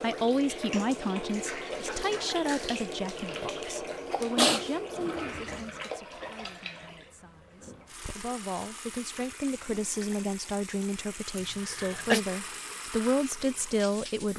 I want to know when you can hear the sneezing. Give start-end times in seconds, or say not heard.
2.9-3.5, 4.1-4.7, 11.3-12.2.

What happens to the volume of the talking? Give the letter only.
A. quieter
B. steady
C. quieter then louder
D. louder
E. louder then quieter
C.